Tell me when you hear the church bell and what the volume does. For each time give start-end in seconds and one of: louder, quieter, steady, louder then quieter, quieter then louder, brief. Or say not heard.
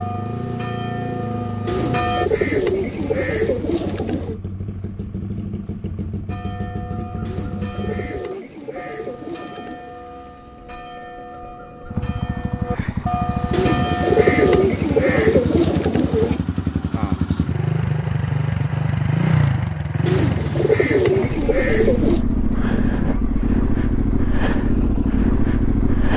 0.0-2.3 brief
6.2-14.7 louder.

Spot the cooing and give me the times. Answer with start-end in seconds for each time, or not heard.
1.6-4.4, 7.2-9.9, 13.5-16.4, 20.1-22.2.